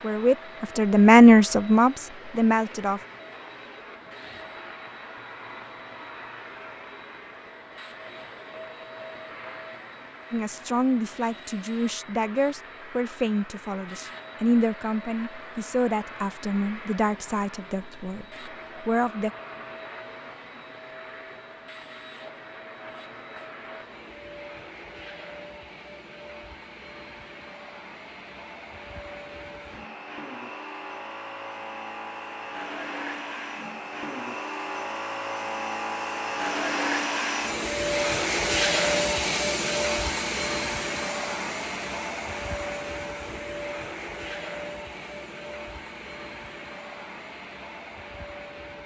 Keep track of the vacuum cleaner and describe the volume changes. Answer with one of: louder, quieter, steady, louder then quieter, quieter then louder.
louder.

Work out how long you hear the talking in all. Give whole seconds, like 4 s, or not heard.
12 s.